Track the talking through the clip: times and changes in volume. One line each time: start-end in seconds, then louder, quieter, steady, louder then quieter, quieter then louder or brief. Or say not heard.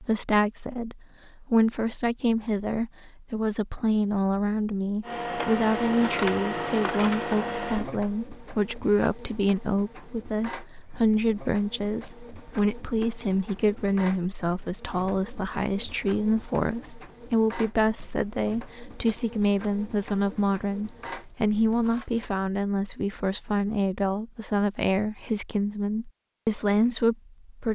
0.0-27.7 steady.